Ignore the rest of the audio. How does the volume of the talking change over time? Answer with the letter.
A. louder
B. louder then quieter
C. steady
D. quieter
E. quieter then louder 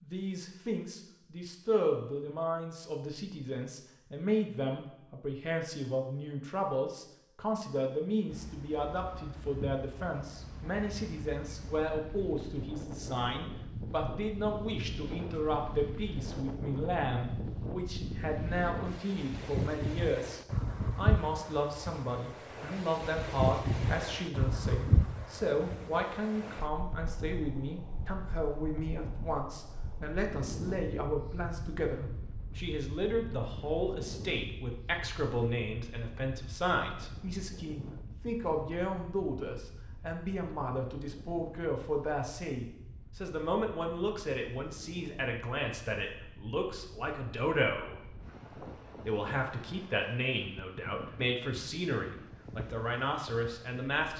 C.